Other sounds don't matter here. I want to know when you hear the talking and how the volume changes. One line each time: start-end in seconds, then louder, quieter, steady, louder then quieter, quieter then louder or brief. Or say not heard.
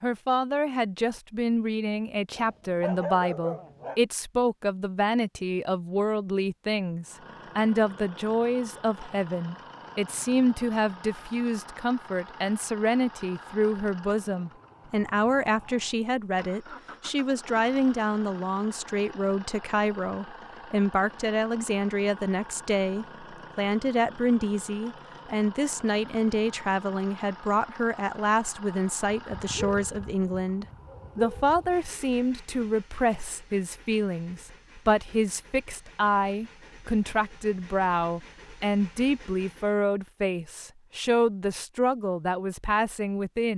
0.0-43.5 steady.